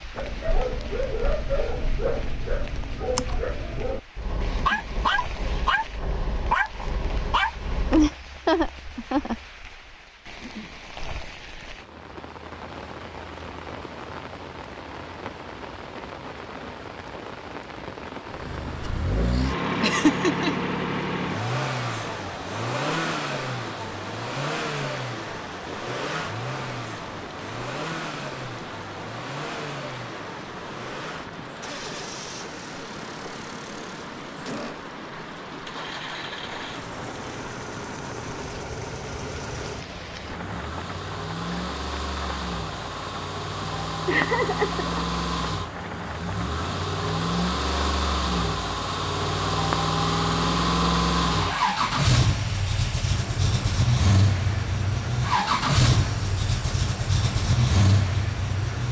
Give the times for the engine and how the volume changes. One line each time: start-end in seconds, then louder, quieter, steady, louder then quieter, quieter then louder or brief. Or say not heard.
18.3-58.8 quieter then louder.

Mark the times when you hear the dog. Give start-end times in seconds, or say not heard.
0.1-8.1.